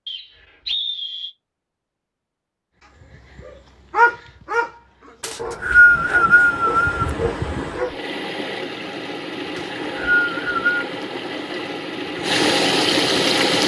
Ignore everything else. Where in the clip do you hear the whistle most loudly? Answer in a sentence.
The loudest moment of the whistle is at 6 seconds.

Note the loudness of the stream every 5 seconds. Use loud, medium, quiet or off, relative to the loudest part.
off, medium, loud.